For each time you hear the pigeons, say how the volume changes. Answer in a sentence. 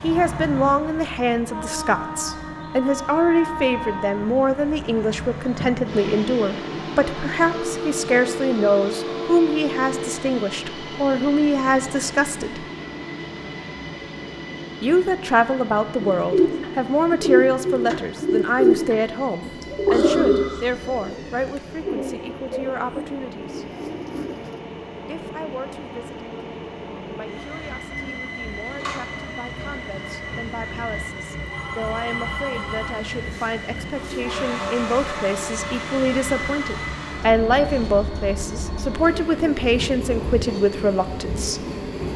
The pigeons can be heard from 16.0 to 24.6 s, getting quieter.